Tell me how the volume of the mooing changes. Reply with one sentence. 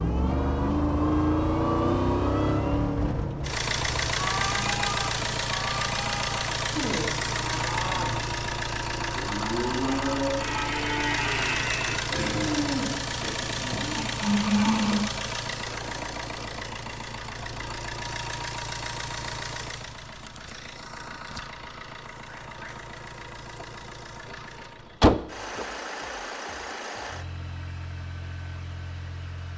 The loudness of the mooing goes up.